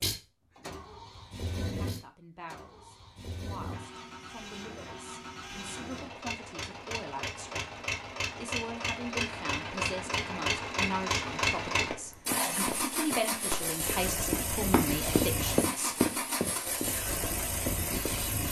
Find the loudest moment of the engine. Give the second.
11 s.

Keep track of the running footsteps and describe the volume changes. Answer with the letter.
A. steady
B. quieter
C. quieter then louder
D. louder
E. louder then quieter
E.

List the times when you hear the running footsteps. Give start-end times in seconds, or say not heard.
11.9-18.2.